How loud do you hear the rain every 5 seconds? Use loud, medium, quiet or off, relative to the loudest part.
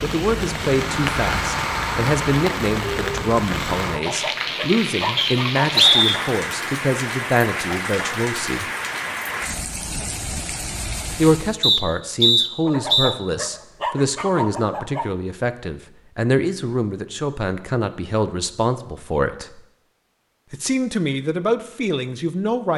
loud, loud, medium, off, off.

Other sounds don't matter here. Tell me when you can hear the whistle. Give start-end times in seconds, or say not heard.
5.2-6.2, 11.6-13.2.